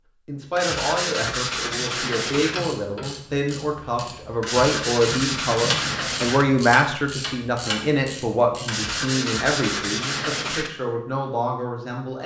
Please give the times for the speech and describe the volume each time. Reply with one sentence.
You can hear the speech from 0.2 to 12.2 s, getting louder then quieter.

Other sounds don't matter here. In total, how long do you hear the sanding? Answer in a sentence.
You can hear the sanding for 6 seconds altogether.